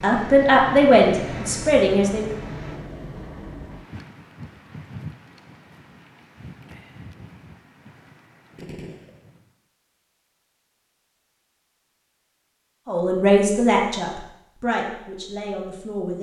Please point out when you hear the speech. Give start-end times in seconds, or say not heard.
0.0-2.2, 12.8-16.1.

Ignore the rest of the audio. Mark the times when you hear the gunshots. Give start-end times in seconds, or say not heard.
8.6-9.2.